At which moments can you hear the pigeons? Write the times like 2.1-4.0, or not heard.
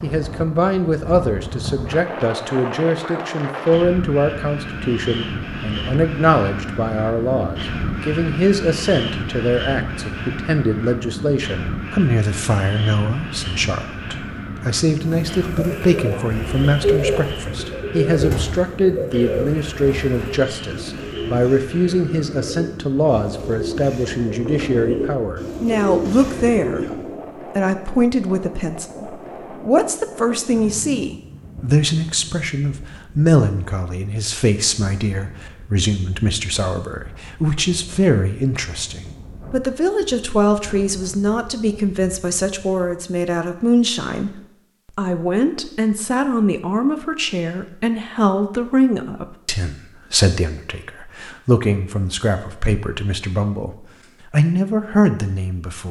15.0-27.2.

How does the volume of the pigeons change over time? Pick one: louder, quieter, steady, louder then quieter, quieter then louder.
quieter then louder.